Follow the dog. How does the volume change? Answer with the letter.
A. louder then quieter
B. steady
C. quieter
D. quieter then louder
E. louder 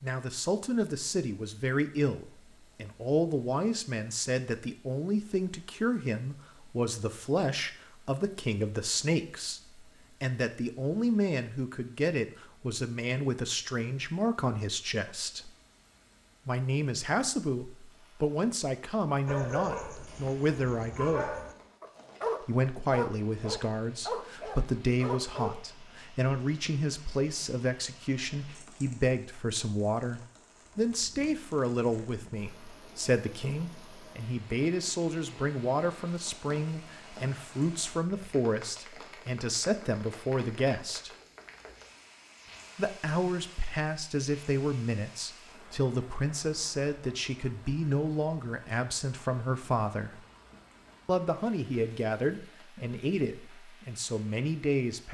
E.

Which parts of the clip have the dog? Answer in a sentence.
You can hear the dog from 19.2 to 25.6 s.